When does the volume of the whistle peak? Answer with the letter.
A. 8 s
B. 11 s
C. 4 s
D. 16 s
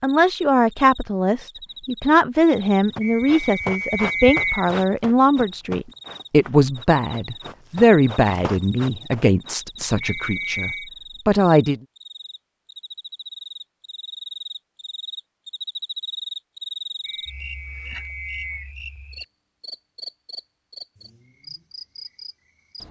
C.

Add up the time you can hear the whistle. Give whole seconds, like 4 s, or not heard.
4 s.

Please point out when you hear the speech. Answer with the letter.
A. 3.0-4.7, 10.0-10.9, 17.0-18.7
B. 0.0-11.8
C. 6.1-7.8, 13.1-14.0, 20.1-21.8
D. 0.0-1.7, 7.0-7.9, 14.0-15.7
B.